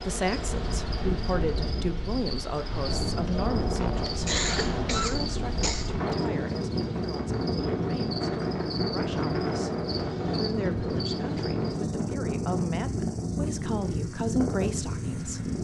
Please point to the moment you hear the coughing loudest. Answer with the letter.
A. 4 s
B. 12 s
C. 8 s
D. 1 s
A.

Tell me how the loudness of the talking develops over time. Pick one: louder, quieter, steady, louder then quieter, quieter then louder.
quieter then louder.